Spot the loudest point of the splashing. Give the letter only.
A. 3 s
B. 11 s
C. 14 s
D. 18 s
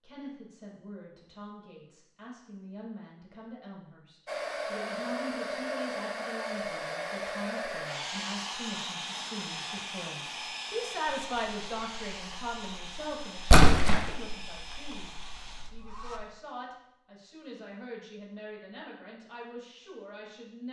C.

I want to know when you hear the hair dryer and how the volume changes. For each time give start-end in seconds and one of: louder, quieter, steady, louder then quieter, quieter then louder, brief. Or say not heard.
4.2-16.2 quieter.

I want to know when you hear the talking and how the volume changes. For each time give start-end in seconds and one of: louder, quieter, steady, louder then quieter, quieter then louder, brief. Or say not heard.
0.0-20.6 louder then quieter.